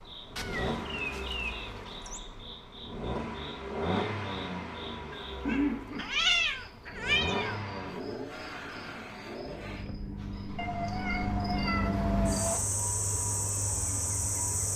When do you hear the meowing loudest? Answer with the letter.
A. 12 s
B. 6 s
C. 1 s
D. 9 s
B.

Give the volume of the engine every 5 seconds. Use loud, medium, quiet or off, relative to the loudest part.
loud, loud, medium.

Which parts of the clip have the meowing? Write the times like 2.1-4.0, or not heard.
0.3-2.2, 5.1-7.6, 10.6-12.6.